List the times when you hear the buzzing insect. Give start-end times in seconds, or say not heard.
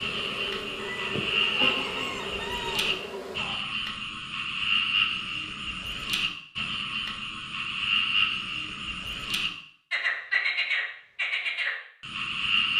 0.0-3.4.